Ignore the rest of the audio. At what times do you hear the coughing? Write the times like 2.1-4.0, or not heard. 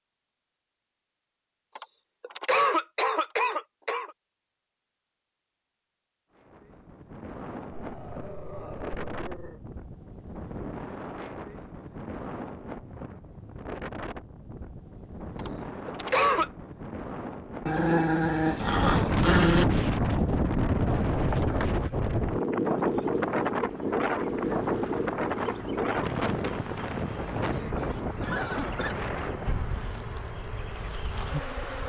1.8-4.1, 15.3-16.5, 27.8-28.9.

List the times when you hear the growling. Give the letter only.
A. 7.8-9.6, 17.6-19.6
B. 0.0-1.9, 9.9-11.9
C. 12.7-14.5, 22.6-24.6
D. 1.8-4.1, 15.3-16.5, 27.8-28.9
A.